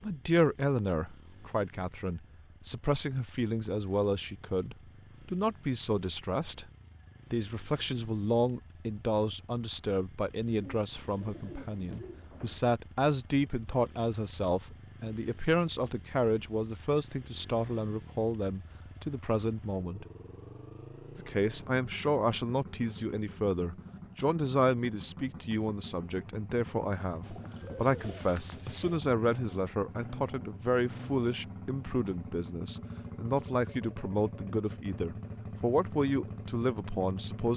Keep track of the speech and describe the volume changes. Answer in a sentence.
The volume of the speech stays about the same.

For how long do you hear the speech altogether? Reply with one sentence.
The speech can be heard for 36 seconds in total.